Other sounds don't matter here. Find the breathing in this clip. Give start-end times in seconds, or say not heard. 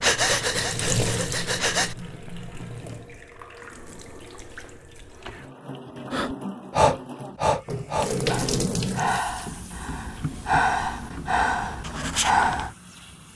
0.0-1.9, 6.1-12.7.